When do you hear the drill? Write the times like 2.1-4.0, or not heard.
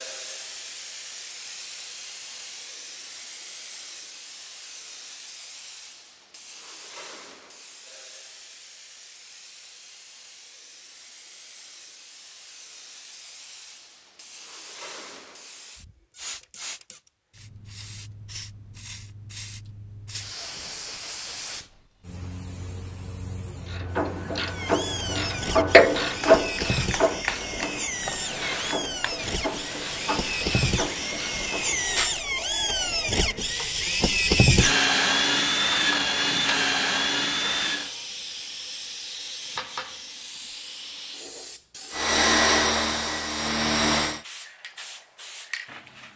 24.4-38.0, 41.9-44.2.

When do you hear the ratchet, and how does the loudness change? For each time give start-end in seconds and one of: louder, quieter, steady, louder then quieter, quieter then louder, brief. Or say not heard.
23.6-31.8 louder then quieter.